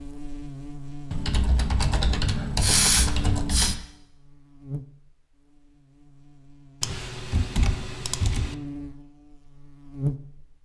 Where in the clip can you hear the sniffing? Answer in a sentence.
The sniffing can be heard from 2.6 to 3.8 s.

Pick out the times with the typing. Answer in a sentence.
The typing can be heard from 1.1 to 3.8 s and from 6.8 to 8.6 s.